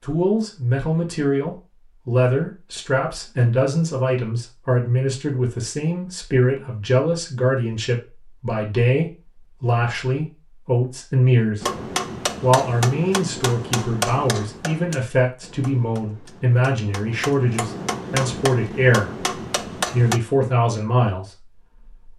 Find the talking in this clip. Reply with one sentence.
You can hear the talking from 0.0 to 22.1 s.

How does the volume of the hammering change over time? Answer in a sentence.
The volume of the hammering goes down, then up.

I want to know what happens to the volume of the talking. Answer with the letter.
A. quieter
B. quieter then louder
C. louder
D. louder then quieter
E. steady
E.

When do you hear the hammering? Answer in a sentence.
The hammering can be heard from 11.6 to 20.2 s.